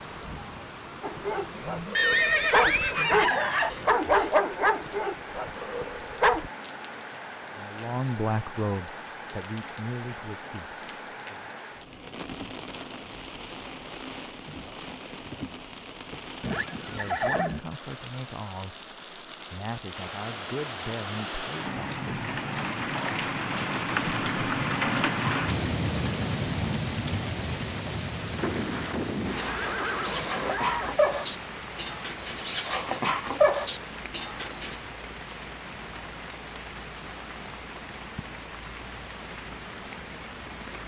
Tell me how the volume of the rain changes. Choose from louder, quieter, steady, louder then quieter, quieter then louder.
louder then quieter.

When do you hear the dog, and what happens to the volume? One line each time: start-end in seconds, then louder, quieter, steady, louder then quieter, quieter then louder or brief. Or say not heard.
1.0-6.5 louder then quieter
29.4-34.8 louder.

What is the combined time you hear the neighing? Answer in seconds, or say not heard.
6 s.